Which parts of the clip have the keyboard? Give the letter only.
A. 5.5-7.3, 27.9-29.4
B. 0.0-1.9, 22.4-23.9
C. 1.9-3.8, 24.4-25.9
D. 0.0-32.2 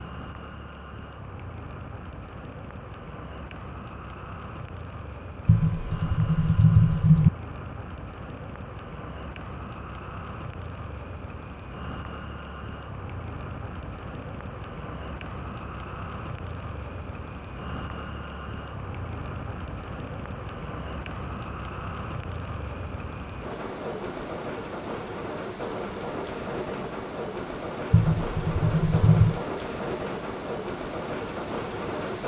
A.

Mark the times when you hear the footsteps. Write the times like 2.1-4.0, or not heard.
not heard.